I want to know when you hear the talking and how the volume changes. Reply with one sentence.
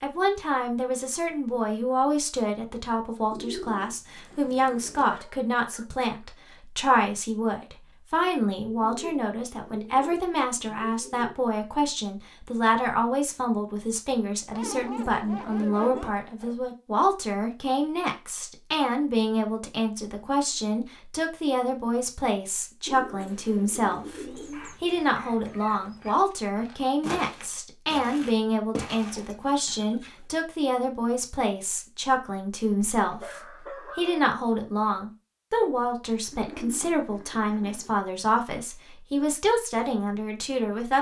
You can hear the talking from 0.0 to 40.9 s, at a steady volume.